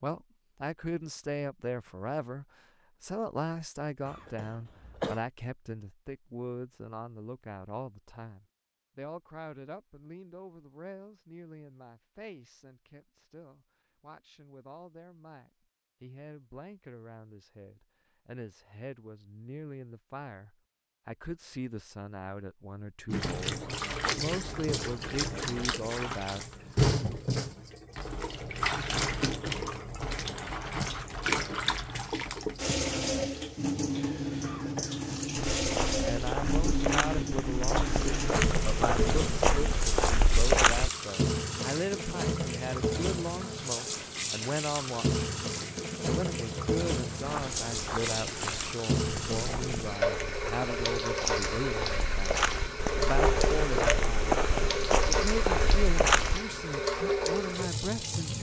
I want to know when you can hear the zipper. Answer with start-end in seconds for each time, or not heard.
not heard.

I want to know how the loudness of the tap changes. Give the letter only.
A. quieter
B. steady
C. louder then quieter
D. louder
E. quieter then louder
B.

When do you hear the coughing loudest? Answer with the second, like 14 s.
5 s.